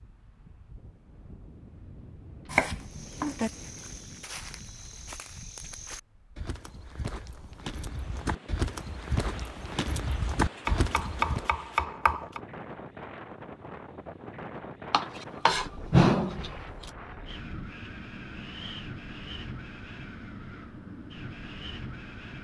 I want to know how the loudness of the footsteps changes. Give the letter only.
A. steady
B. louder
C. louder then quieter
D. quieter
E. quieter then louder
B.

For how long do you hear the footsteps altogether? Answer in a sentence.
You can hear the footsteps for 9 seconds altogether.